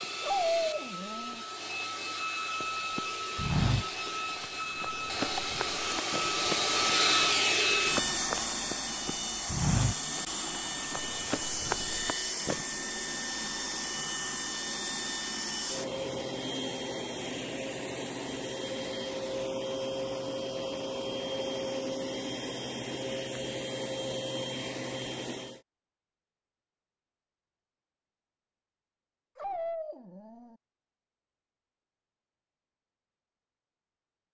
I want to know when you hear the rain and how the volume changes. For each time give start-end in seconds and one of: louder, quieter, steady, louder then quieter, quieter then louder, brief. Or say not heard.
not heard.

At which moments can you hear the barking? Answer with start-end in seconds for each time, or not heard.
0.2-1.4, 29.4-30.6.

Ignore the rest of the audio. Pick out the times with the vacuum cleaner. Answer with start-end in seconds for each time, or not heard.
0.0-25.6.